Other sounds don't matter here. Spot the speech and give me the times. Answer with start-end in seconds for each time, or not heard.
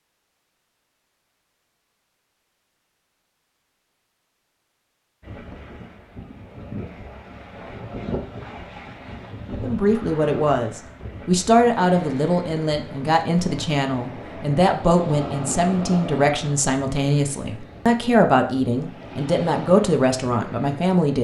9.6-21.1.